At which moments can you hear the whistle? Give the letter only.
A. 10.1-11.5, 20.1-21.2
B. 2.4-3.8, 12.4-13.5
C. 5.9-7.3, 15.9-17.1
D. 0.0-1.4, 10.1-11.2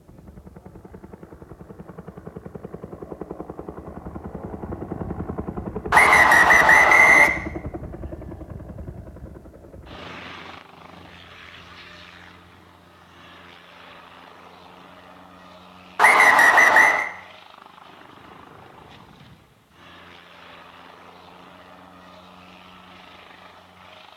C.